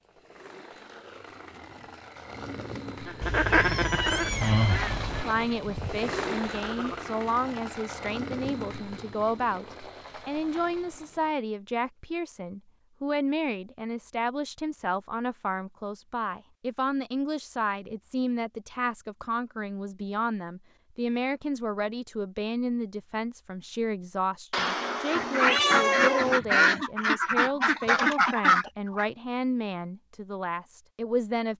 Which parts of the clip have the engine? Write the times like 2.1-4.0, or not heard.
0.0-11.3.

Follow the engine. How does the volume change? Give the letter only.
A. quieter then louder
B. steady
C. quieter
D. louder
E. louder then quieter
E.